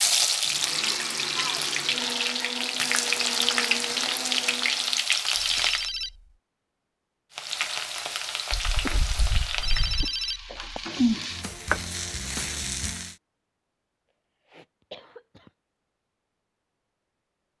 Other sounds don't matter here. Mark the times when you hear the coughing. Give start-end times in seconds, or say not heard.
1.4-2.1, 8.5-10.1, 14.5-15.5.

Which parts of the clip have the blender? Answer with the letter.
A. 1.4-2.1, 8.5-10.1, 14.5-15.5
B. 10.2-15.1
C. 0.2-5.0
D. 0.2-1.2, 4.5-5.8
C.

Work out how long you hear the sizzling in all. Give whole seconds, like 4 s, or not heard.
12 s.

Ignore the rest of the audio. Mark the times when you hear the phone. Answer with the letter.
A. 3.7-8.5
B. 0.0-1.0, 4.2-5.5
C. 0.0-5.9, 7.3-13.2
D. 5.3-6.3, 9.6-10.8
D.